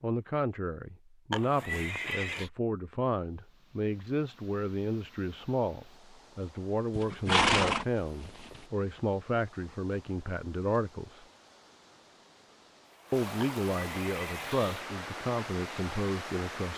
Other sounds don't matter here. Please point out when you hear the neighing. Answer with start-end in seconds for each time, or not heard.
1.3-2.5, 7.0-8.7, 13.4-14.8.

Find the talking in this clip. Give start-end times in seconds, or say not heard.
0.0-11.2, 13.1-16.7.